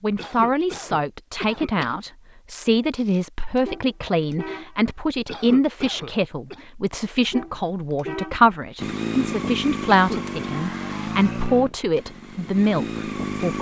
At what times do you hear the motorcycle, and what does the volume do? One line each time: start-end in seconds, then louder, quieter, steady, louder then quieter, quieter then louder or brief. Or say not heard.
8.8-13.5 quieter then louder.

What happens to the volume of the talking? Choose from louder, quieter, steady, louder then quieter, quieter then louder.
steady.